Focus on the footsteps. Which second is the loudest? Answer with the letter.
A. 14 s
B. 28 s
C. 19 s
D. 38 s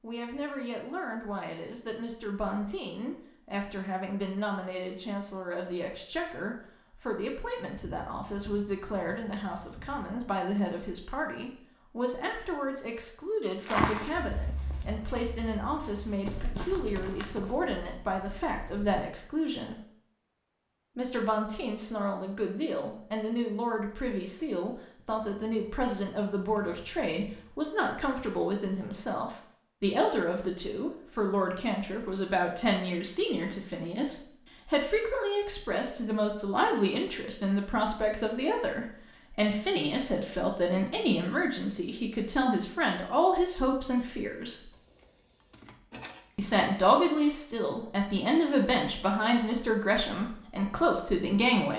A.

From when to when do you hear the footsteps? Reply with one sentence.
You can hear the footsteps from 13.6 to 19.1 s.